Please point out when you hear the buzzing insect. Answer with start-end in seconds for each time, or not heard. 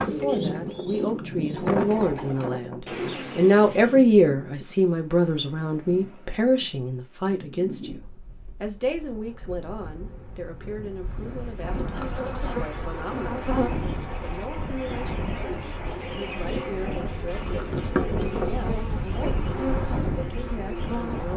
8.8-21.3.